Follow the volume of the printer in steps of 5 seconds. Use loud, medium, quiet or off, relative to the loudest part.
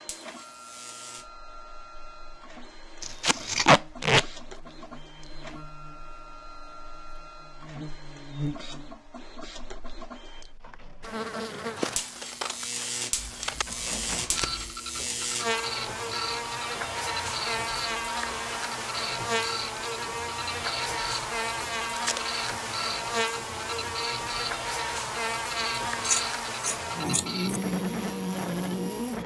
medium, medium, loud, loud, loud, loud.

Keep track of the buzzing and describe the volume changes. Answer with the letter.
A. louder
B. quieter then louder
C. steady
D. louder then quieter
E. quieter
A.